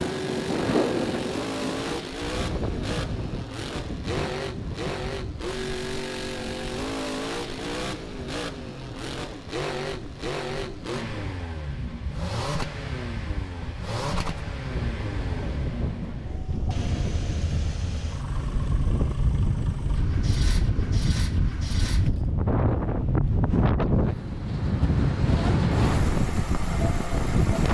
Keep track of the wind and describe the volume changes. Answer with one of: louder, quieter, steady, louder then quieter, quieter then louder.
quieter then louder.